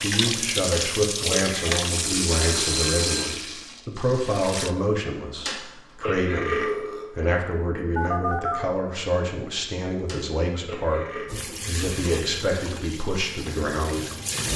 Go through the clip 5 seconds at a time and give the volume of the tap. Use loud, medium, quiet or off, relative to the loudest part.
loud, off, medium.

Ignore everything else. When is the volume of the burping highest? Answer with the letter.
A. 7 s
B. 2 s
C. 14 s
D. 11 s
A.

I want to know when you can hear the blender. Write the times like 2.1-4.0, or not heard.
not heard.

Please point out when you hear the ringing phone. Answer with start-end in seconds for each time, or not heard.
2.4-3.4, 7.8-8.8.